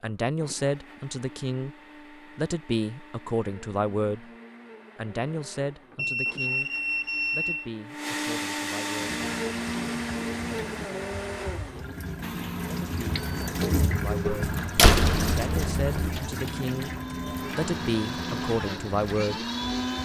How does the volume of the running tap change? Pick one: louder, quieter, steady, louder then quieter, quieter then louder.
louder then quieter.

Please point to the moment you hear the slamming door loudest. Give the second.
15 s.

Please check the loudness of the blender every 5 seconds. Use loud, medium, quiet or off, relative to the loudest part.
quiet, loud, loud, loud.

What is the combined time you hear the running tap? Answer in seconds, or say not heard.
11 s.